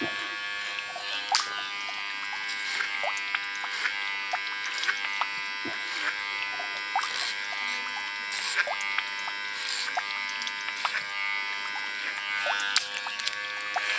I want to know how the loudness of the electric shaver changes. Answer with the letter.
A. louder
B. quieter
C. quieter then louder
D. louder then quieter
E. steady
E.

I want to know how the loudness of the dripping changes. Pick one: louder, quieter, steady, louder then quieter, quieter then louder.
steady.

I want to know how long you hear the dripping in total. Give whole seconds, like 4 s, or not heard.
14 s.